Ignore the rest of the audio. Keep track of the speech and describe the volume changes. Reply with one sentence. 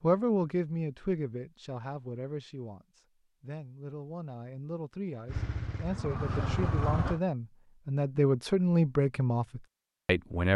The loudness of the speech goes down, then up.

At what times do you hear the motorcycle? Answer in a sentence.
The motorcycle can be heard from 5.2 to 7.2 s.